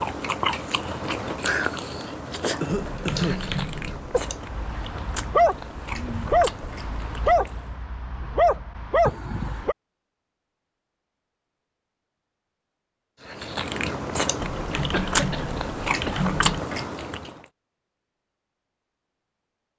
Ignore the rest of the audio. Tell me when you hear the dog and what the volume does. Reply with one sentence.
The dog can be heard from 4.1 to 9.8 s, getting quieter then louder.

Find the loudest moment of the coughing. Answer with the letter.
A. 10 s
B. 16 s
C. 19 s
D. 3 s
D.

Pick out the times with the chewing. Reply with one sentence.
The chewing can be heard from 0.0 to 7.8 s and from 13.2 to 17.4 s.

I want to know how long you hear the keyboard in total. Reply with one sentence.
You can hear the keyboard for 4 seconds altogether.